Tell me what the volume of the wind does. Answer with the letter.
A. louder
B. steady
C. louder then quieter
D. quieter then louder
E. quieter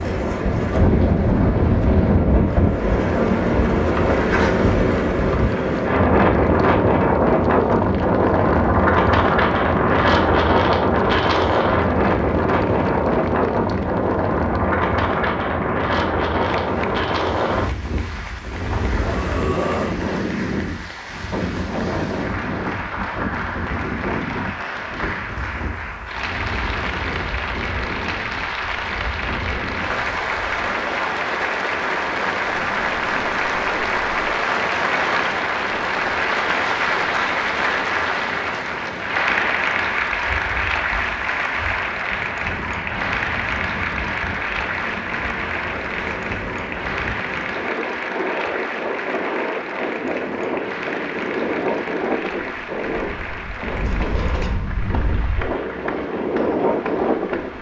D.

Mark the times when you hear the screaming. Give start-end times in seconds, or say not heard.
19.0-20.0.